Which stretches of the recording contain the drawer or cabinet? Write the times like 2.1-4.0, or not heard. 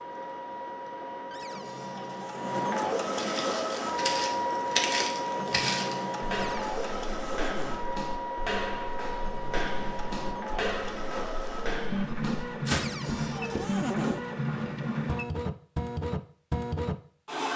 1.3-2.6, 6.3-7.8, 12.7-14.2.